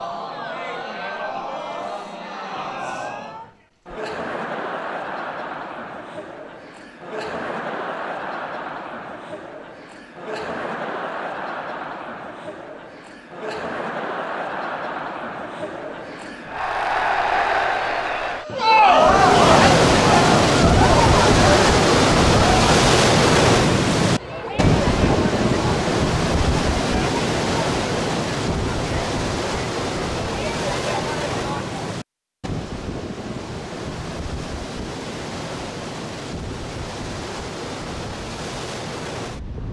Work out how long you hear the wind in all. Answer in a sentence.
The wind can be heard for 21 seconds in total.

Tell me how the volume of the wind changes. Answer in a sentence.
The loudness of the wind goes down.